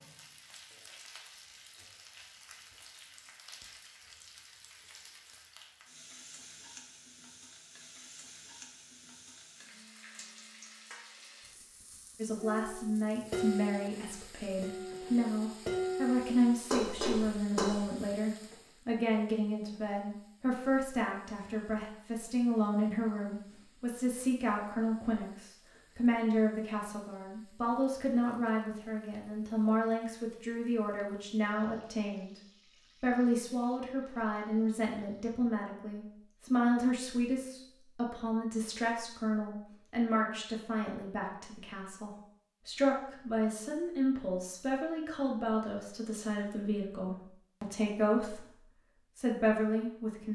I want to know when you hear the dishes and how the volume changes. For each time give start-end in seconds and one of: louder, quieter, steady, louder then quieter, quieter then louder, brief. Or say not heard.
12.3-17.8 quieter then louder.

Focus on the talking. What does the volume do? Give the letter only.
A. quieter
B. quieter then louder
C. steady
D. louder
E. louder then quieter
C.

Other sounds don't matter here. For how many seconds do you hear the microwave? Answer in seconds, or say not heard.
not heard.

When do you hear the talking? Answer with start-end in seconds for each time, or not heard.
12.2-32.4, 33.0-50.3.